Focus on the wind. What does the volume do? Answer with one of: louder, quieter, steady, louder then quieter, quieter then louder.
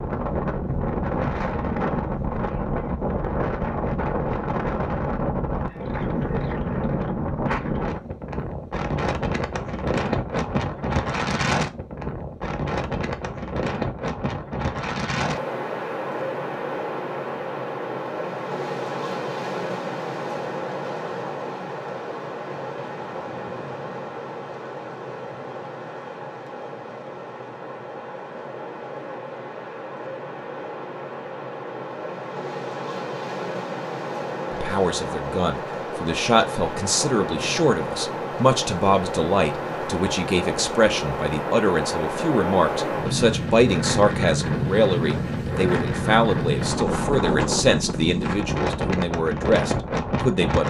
quieter then louder.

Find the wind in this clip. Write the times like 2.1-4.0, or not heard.
0.0-50.6.